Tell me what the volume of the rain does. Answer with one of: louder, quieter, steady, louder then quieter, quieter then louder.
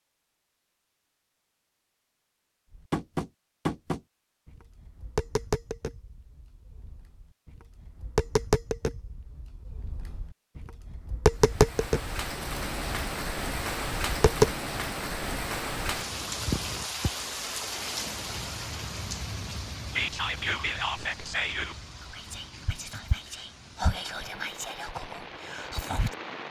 quieter.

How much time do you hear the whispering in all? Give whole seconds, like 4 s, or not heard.
6 s.